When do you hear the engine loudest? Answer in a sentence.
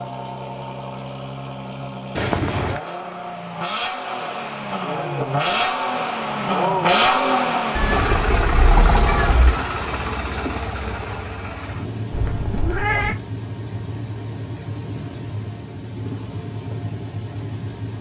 The volume of the engine peaks at 7 seconds.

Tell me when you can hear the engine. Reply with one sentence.
You can hear the engine from 0.0 to 17.9 s.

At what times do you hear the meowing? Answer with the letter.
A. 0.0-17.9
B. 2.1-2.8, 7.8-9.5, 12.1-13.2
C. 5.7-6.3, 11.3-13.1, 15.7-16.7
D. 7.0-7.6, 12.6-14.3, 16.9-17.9
B.